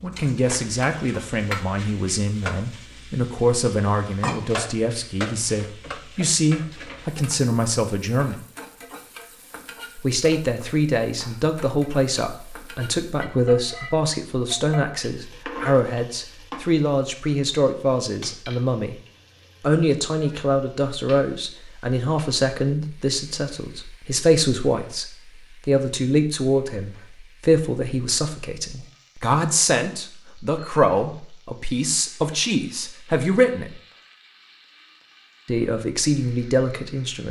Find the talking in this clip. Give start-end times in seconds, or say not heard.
0.0-8.4, 9.9-19.0, 19.6-33.8, 35.5-37.2.